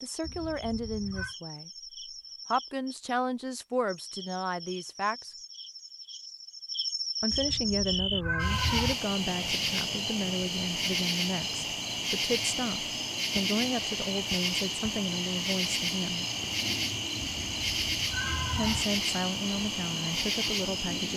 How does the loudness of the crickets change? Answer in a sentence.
The loudness of the crickets goes up.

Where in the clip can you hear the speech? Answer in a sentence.
The speech can be heard from 0.0 to 1.7 s, from 2.5 to 5.3 s, from 7.2 to 16.2 s and from 18.6 to 21.1 s.